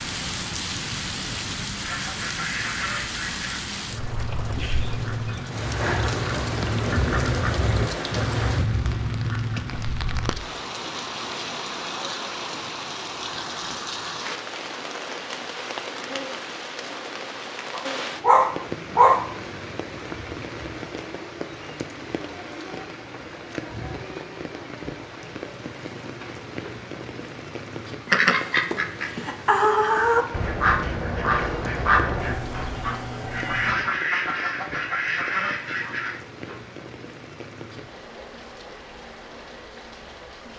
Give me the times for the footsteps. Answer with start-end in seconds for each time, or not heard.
not heard.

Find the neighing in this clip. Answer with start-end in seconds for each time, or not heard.
32.1-33.8.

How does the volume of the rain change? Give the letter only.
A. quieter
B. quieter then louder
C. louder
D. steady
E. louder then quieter
A.